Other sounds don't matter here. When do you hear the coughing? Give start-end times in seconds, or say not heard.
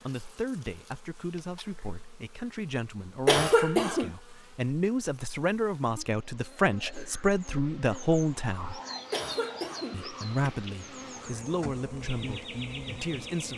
3.2-4.1, 9.1-10.6.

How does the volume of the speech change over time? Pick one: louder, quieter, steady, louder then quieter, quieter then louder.
louder then quieter.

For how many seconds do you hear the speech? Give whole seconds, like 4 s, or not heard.
12 s.